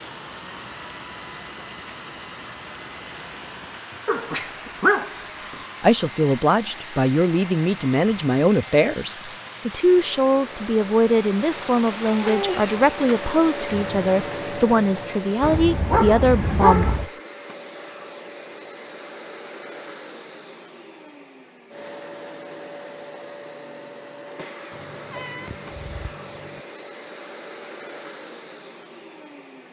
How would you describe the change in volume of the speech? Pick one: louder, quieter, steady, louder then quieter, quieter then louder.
steady.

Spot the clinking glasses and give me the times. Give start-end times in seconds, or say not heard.
not heard.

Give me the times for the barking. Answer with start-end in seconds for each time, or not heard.
4.0-5.2, 15.4-17.1.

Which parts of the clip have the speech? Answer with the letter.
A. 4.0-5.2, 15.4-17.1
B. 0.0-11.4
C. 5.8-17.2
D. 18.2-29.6
C.